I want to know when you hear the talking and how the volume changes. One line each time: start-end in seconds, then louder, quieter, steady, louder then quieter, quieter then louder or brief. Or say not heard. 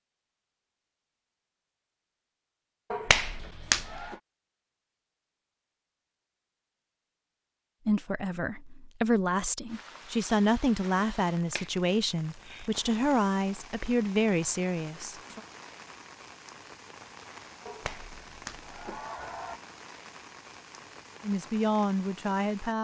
7.8-15.4 steady
21.2-22.7 brief.